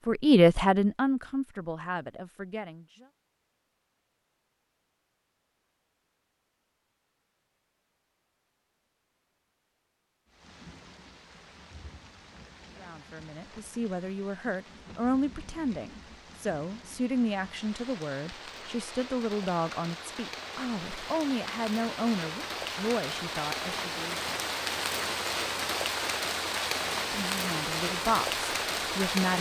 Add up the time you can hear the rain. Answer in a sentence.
The rain can be heard for 19 seconds in total.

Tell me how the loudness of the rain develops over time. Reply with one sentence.
The volume of the rain goes up.